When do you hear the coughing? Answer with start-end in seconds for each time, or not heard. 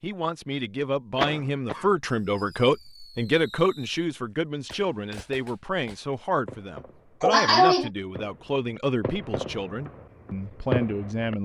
1.1-1.9, 7.2-7.9.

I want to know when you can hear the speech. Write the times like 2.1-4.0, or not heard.
0.0-11.3.